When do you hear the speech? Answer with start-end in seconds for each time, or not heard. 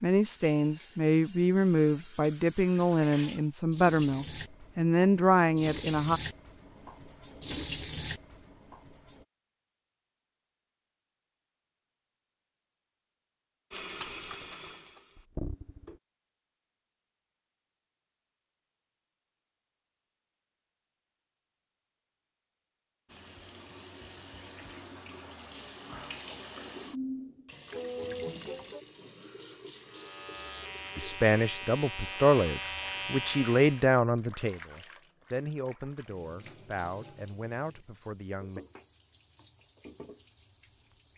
0.0-6.2, 30.9-38.6.